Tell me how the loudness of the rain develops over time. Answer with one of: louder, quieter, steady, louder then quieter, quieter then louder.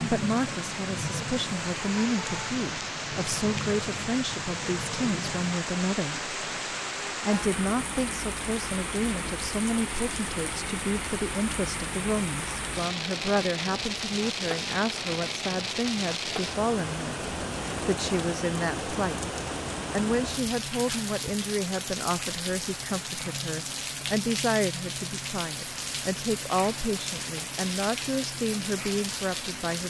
steady.